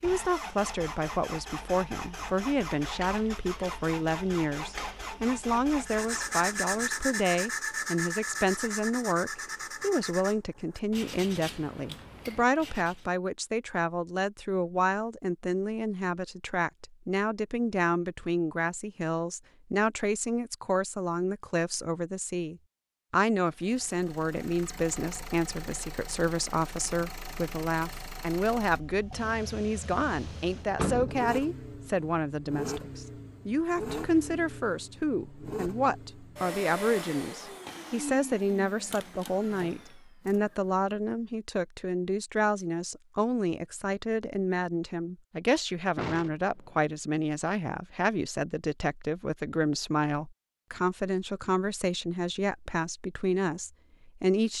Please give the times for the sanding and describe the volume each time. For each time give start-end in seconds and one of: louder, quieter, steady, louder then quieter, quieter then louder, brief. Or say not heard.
5.8-13.2 quieter.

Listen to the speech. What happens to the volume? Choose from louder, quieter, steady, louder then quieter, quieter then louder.
steady.